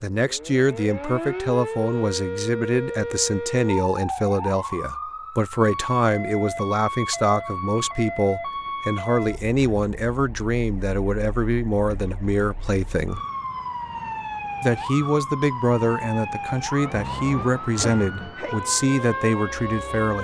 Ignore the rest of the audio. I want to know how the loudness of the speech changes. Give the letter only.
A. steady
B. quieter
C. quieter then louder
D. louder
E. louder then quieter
A.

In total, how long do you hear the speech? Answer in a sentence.
The speech can be heard for 19 seconds in total.